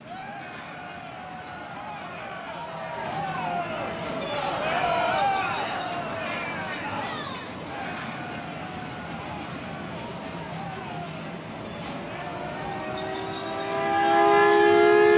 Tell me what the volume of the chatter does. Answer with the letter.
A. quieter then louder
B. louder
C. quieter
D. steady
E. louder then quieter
E.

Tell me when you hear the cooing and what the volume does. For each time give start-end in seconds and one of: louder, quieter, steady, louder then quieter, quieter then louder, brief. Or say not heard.
not heard.